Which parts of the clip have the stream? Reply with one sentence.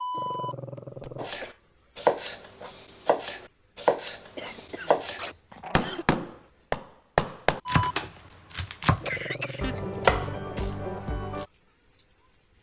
The stream can't be heard in this clip.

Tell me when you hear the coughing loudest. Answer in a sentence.
The loudest moment of the coughing is at 9 seconds.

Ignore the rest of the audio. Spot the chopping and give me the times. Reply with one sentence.
You can hear the chopping from 1.1 to 11.4 s.